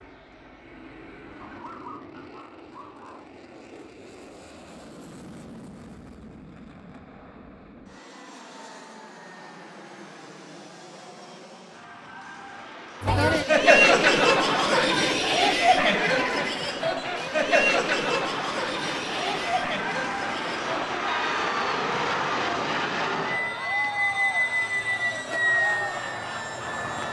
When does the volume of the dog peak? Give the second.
2 s.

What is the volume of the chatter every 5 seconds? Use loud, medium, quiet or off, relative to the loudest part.
off, off, loud, medium, quiet, quiet.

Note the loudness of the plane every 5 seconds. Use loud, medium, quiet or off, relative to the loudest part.
quiet, quiet, quiet, medium, loud, loud.